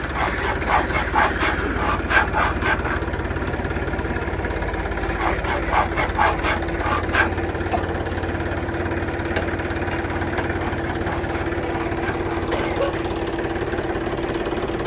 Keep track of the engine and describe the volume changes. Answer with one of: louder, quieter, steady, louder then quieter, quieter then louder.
steady.